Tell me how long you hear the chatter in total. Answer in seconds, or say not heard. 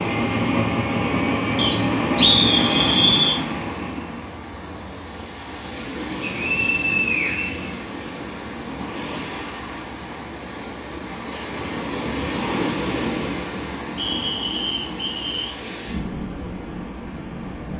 not heard.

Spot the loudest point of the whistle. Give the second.
2 s.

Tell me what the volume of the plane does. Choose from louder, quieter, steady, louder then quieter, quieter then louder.
quieter.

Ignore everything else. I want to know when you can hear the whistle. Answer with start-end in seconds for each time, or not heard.
1.6-3.4, 6.2-8.2, 13.9-15.6.